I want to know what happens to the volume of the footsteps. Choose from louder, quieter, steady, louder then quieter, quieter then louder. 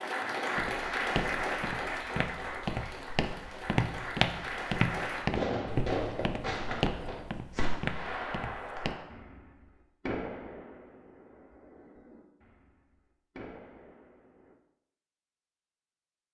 louder then quieter.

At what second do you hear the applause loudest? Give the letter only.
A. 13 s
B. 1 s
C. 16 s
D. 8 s
B.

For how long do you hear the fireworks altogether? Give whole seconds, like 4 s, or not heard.
9 s.